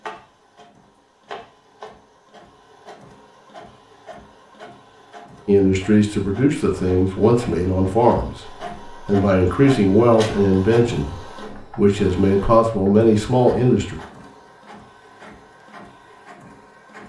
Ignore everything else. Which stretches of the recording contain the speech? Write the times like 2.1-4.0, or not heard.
5.5-13.9.